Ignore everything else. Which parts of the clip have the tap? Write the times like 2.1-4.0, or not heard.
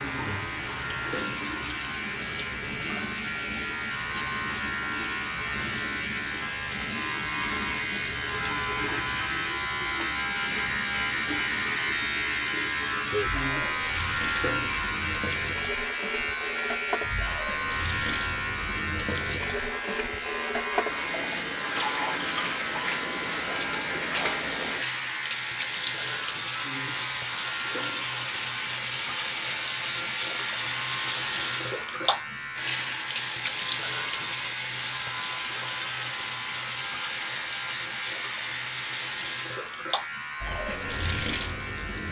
0.0-42.0.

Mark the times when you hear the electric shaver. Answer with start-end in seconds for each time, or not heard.
0.0-42.0.